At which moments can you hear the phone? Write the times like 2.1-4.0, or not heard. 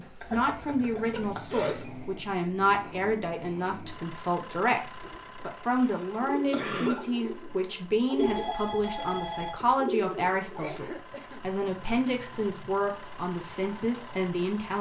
0.9-1.9, 8.2-9.7.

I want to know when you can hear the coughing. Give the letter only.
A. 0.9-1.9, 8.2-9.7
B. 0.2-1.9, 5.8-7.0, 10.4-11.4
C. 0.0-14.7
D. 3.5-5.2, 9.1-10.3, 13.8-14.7
B.